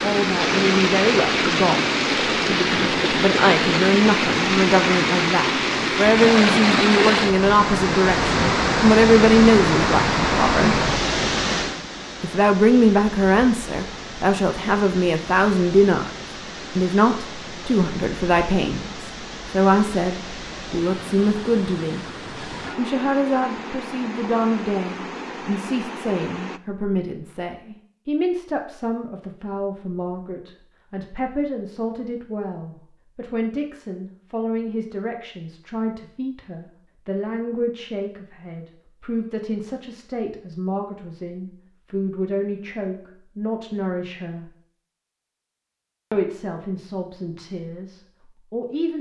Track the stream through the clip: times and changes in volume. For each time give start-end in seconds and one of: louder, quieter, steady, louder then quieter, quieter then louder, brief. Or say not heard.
0.0-26.6 quieter.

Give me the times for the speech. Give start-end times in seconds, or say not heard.
0.0-10.8, 12.2-22.1, 22.8-44.5, 46.1-48.9.